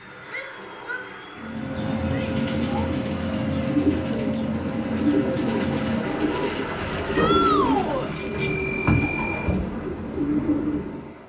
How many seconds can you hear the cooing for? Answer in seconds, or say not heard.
10 s.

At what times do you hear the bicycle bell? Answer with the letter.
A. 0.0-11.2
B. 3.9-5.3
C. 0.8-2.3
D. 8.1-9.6
D.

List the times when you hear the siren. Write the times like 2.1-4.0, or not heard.
not heard.